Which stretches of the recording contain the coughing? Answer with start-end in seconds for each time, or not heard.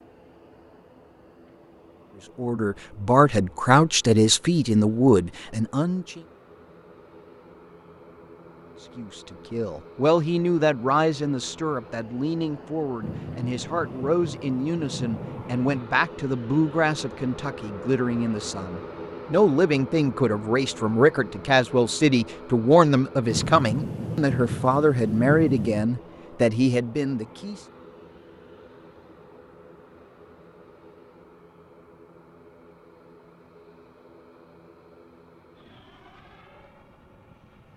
not heard.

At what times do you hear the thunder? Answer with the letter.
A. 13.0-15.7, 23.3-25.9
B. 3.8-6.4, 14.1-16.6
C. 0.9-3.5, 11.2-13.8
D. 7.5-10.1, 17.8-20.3
A.